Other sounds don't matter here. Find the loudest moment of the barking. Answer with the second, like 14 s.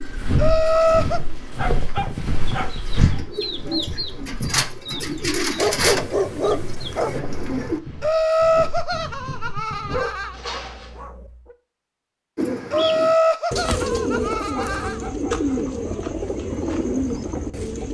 6 s.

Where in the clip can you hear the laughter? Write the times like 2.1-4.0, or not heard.
0.3-1.2, 8.0-10.3, 12.7-15.0.